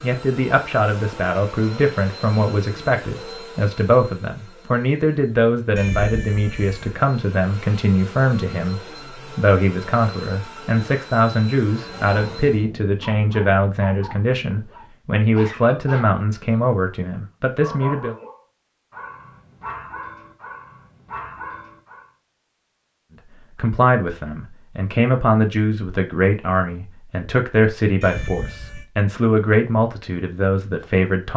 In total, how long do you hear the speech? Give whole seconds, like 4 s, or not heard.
26 s.